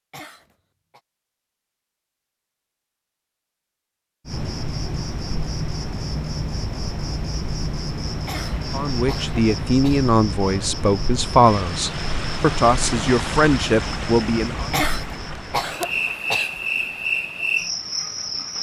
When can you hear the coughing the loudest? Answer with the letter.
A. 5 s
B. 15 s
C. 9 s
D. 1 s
B.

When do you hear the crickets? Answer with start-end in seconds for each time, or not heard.
4.2-18.5.